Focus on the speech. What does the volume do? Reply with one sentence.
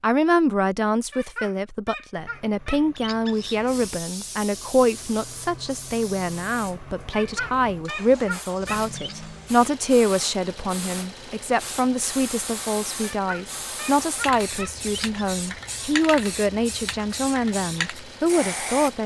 The volume of the speech stays about the same.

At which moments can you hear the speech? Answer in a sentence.
The speech can be heard from 0.0 to 19.0 s.